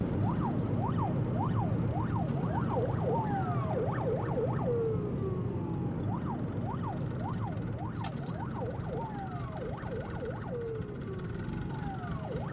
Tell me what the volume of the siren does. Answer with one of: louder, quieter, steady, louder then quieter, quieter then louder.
quieter.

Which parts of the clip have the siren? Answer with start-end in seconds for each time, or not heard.
0.0-12.4.